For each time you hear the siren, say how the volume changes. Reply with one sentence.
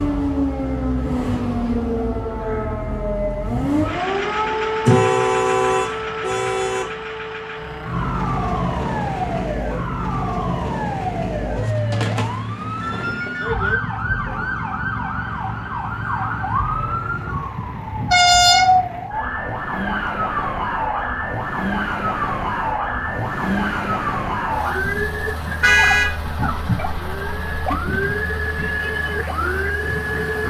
The siren can be heard from 0.0 to 30.4 s, at a steady volume.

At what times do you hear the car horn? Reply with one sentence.
The car horn can be heard from 4.8 to 6.8 s, from 18.1 to 18.6 s and from 25.6 to 26.1 s.